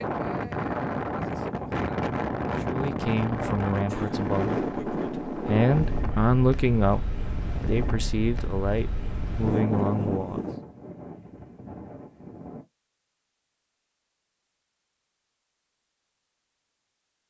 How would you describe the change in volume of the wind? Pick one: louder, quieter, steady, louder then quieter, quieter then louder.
quieter.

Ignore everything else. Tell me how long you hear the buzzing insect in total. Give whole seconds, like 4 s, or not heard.
not heard.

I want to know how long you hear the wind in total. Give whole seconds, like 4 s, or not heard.
13 s.